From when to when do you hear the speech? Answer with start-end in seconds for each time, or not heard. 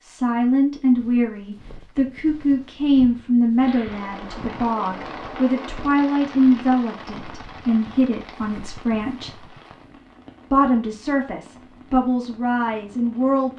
0.0-9.3, 10.5-13.5.